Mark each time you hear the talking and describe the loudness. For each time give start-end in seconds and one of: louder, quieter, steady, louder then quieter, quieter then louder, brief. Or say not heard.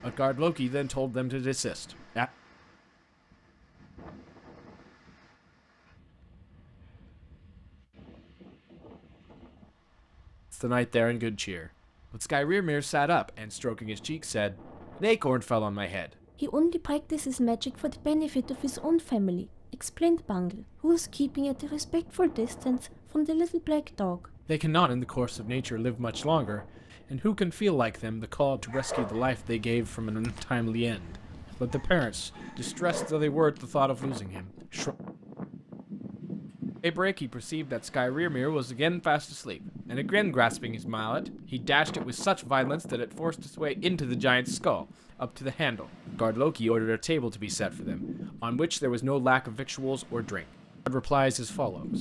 0.0-2.3 brief
10.5-35.0 steady
36.8-51.9 steady.